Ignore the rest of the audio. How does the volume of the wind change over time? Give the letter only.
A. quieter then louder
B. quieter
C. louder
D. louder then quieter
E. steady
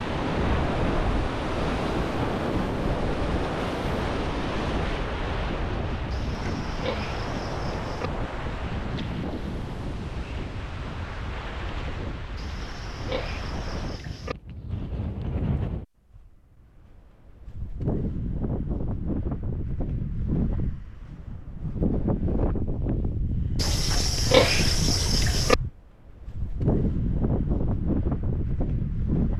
A.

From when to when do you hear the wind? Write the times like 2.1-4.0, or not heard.
0.0-29.3.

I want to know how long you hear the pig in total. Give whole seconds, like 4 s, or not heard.
6 s.